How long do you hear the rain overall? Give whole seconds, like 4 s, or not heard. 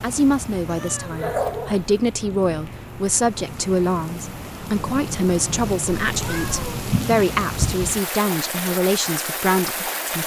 10 s.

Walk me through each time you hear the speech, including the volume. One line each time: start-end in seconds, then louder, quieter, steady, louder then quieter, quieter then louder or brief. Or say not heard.
0.0-10.2 steady.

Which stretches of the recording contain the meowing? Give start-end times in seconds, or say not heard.
0.7-2.0, 6.0-6.8.